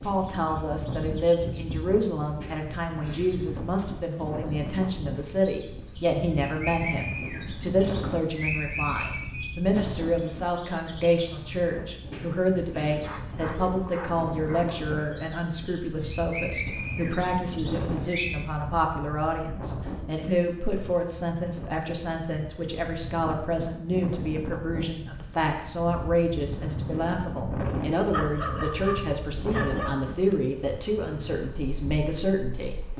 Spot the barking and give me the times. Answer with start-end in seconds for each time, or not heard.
13.0-14.9, 28.1-30.4.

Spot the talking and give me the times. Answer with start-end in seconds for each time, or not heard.
0.0-32.8.